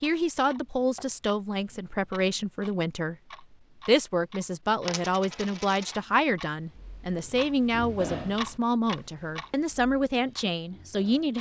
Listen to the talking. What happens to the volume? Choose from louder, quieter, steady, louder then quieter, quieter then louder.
steady.